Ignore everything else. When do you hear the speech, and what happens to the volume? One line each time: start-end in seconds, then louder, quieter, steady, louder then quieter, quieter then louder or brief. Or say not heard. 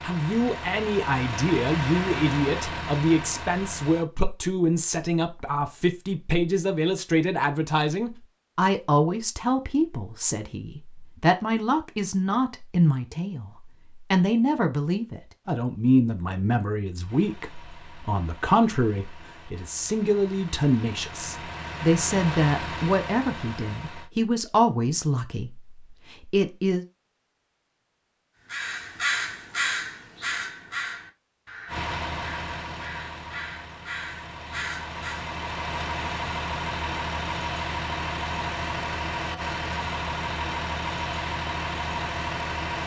0.0-26.9 steady.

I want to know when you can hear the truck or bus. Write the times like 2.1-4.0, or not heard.
0.0-4.0, 17.0-24.1, 31.6-42.8.